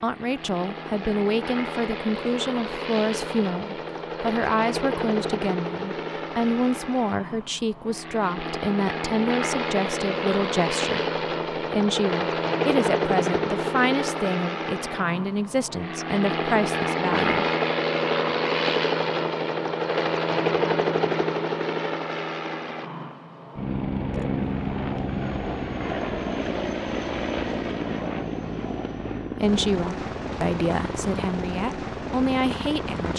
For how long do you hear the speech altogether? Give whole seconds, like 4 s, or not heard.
21 s.